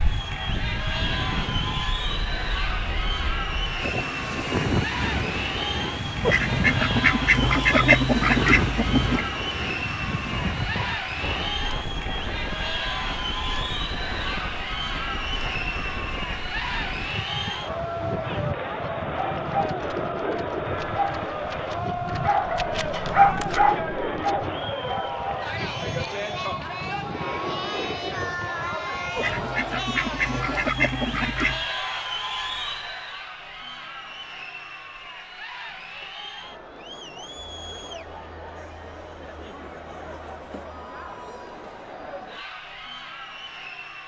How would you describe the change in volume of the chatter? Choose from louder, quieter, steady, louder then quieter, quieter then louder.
quieter.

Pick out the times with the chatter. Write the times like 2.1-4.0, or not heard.
0.0-44.0.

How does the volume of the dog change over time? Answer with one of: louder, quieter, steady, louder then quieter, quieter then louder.
louder then quieter.